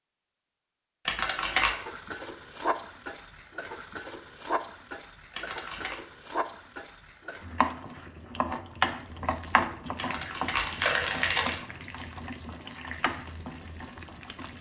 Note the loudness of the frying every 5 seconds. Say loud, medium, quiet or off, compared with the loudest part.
loud, loud, medium.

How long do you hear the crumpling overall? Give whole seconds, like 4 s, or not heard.
3 s.